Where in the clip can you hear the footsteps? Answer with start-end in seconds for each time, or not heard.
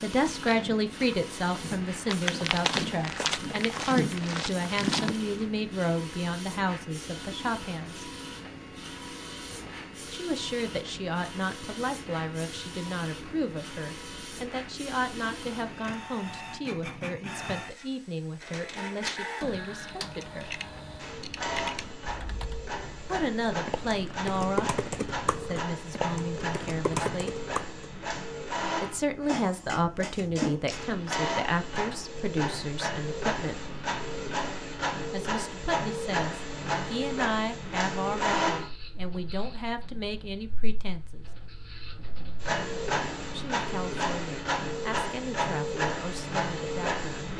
0.1-5.3.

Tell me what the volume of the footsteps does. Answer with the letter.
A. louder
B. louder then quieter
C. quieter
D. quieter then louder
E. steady
A.